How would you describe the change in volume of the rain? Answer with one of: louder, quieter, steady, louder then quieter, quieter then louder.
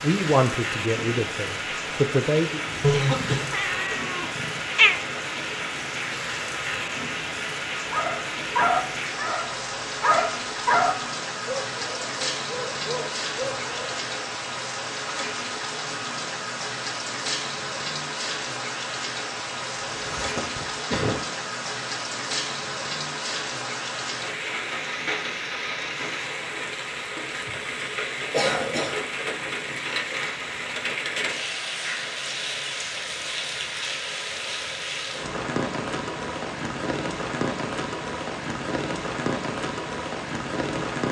steady.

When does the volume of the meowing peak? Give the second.
5 s.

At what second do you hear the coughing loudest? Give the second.
3 s.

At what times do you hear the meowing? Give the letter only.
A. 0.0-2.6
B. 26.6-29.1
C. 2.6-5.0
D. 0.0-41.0
C.